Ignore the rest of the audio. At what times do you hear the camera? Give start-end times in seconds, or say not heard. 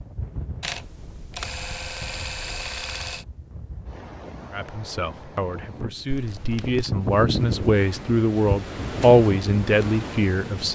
0.6-3.2, 6.0-6.9.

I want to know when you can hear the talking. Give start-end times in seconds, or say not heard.
4.5-10.6.